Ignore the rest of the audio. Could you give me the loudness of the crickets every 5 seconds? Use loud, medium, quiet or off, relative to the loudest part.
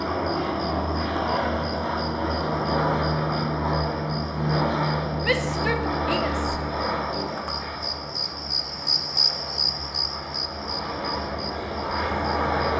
quiet, loud, medium.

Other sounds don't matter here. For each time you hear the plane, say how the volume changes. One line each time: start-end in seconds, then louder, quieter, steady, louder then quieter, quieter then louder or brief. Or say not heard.
0.0-12.7 quieter then louder.